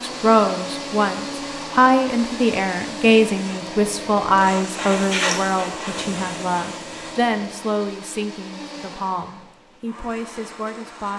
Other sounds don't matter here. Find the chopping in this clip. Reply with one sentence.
The chopping can't be heard in this clip.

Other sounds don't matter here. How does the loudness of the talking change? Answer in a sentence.
The loudness of the talking goes down.